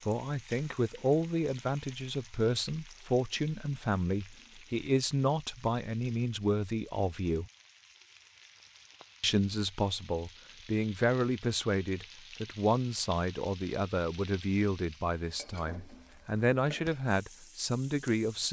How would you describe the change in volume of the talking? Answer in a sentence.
The loudness of the talking stays about the same.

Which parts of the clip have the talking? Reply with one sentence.
The talking can be heard from 0.1 to 7.5 s and from 9.2 to 18.4 s.